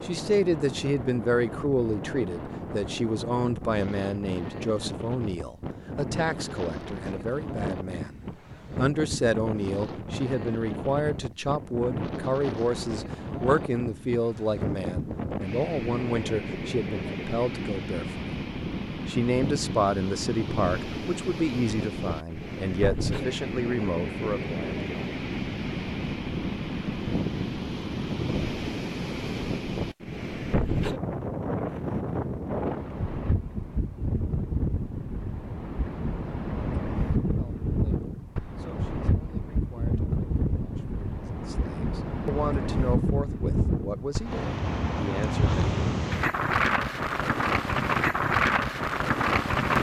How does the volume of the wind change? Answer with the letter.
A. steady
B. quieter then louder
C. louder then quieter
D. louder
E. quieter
D.